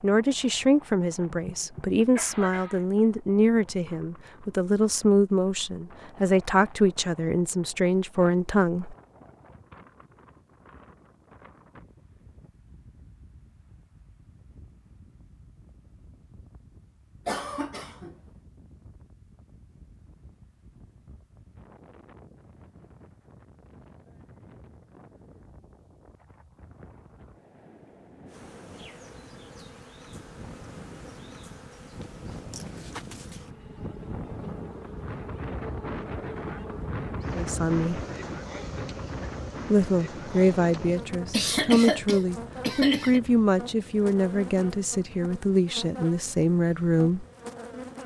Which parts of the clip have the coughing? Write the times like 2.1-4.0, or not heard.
1.2-2.9, 17.2-18.1, 41.3-43.2.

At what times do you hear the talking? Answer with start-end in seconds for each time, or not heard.
0.0-8.9, 37.4-38.0, 39.7-47.2.